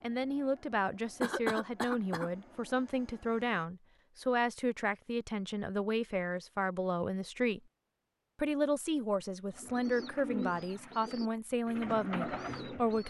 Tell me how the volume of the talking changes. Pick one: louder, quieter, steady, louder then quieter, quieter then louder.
steady.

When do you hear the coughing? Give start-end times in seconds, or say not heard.
1.2-2.3.